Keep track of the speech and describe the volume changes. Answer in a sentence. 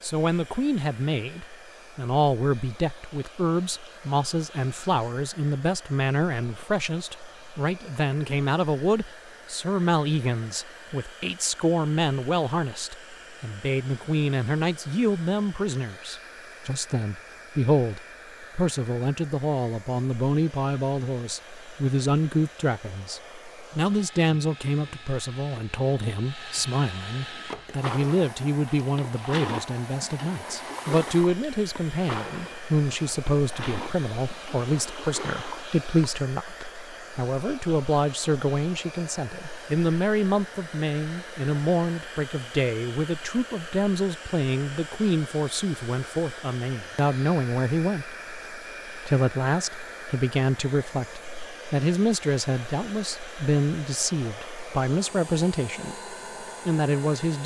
The volume of the speech stays about the same.